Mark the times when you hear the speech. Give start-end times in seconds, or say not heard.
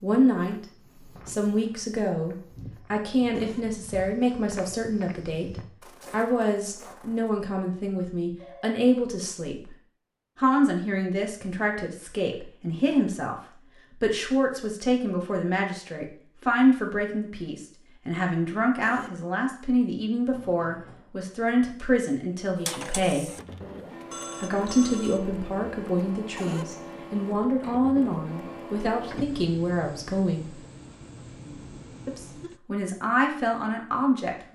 0.0-0.7, 1.2-9.8, 10.3-23.3, 24.4-30.6, 32.0-34.4.